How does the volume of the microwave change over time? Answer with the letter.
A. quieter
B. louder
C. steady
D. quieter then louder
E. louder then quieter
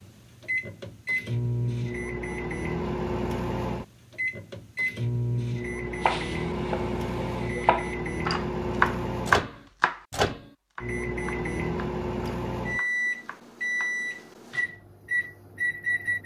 C.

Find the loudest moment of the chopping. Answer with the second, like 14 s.
9 s.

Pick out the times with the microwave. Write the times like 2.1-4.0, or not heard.
0.0-16.2.